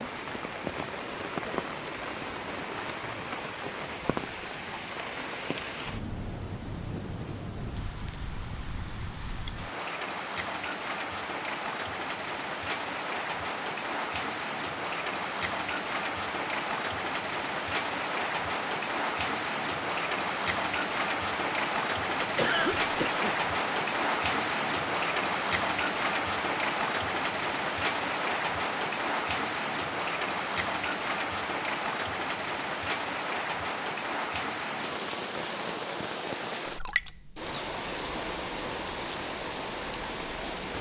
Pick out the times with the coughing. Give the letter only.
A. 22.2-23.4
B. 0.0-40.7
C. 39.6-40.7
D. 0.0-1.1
A.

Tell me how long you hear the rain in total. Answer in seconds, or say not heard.
41 s.